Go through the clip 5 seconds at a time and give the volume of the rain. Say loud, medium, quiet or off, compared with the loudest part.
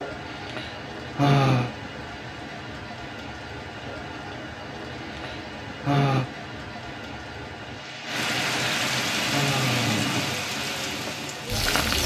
medium, loud, loud.